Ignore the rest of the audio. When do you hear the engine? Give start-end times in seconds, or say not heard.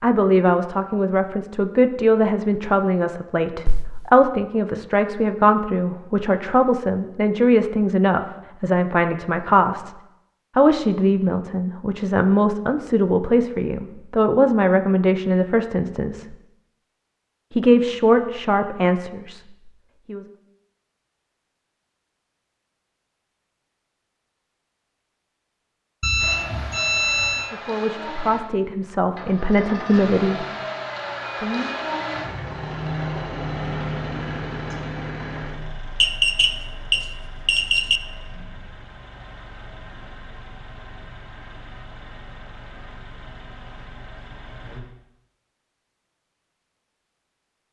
26.1-44.8.